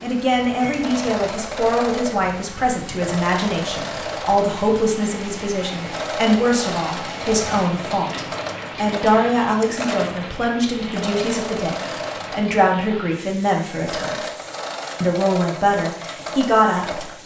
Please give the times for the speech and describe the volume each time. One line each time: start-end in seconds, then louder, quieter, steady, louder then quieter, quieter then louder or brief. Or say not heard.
0.0-14.2 steady
15.0-17.2 brief.